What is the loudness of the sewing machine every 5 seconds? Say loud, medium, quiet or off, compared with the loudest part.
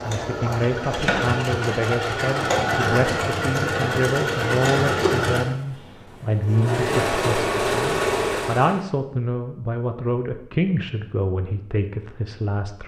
loud, loud, off.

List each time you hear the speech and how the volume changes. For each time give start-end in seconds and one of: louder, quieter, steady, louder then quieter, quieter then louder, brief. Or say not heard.
0.0-12.8 steady.